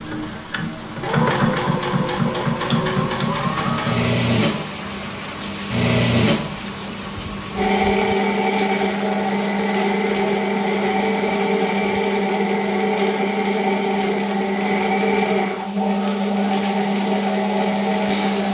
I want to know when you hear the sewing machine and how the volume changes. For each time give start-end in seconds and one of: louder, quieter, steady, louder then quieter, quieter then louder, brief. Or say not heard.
0.0-18.4 steady.